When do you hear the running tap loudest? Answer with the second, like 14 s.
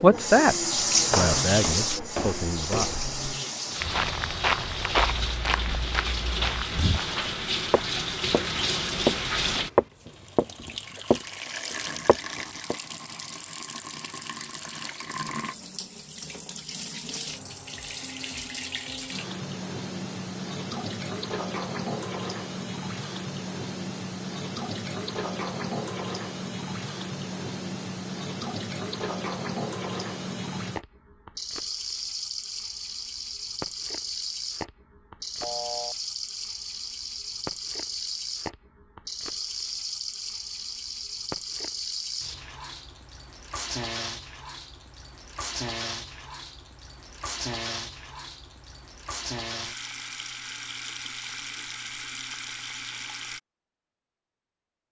1 s.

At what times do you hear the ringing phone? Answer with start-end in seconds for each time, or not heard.
35.4-36.0.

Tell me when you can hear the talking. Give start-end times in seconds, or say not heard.
0.0-0.6, 1.1-2.9.